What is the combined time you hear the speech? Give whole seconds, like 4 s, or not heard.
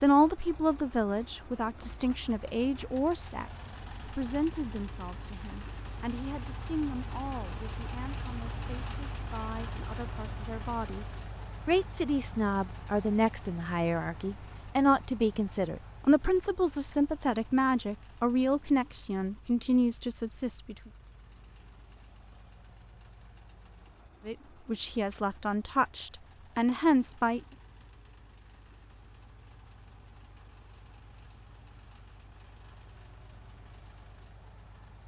24 s.